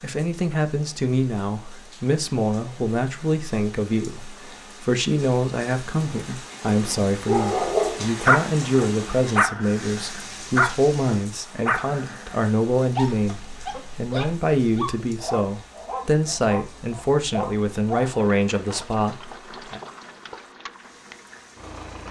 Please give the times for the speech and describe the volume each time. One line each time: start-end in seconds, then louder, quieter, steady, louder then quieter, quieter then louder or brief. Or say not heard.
0.0-19.8 steady.